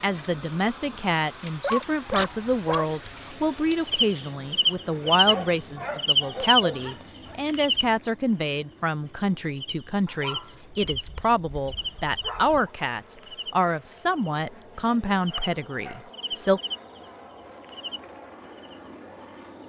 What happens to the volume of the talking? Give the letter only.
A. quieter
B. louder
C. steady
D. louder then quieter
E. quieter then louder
C.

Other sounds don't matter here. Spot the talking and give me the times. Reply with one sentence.
You can hear the talking from 0.0 to 16.6 s.